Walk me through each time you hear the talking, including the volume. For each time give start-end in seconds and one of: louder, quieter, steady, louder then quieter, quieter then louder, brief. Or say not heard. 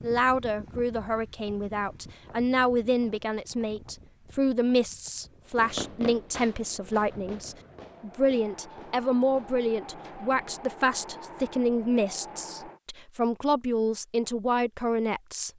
0.0-15.5 steady.